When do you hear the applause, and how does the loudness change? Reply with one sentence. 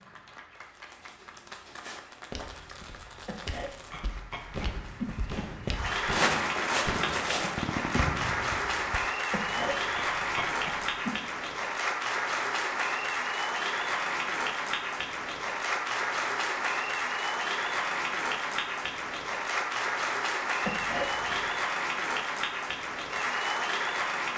You can hear the applause from 0.0 to 24.3 s, getting louder.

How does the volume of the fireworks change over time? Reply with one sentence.
The loudness of the fireworks goes up.